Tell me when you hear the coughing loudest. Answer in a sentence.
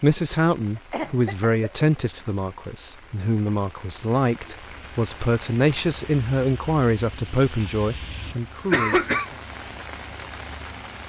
The loudest moment of the coughing is at 9 seconds.